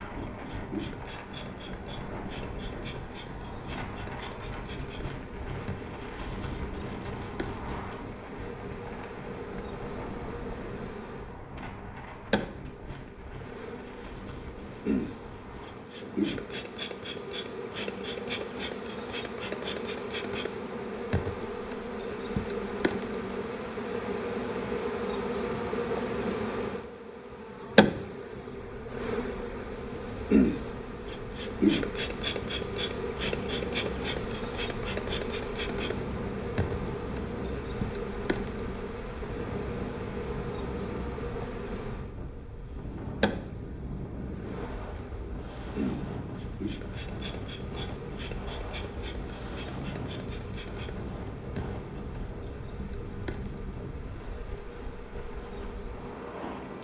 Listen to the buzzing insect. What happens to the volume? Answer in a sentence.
The loudness of the buzzing insect goes up, then down.